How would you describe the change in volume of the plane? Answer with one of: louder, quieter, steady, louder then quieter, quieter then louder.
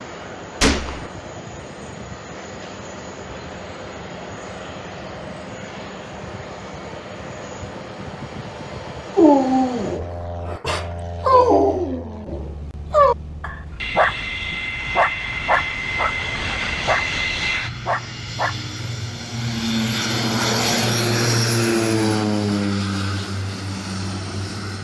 louder.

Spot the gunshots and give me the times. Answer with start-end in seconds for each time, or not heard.
0.6-1.1.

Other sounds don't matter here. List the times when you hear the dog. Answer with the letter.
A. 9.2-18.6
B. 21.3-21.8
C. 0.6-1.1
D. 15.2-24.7
A.